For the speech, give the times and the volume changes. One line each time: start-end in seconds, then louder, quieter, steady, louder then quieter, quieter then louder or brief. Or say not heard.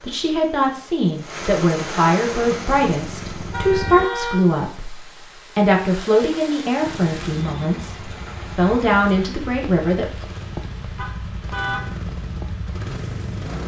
0.0-10.2 steady.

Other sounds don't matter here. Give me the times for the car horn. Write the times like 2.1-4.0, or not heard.
3.5-4.5, 10.9-12.0.